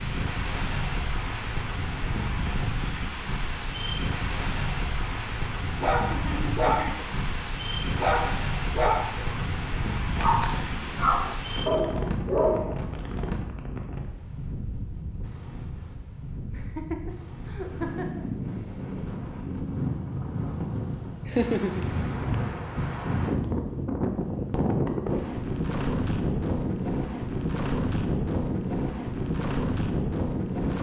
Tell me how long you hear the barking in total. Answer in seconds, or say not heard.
7 s.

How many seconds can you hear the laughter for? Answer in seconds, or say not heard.
4 s.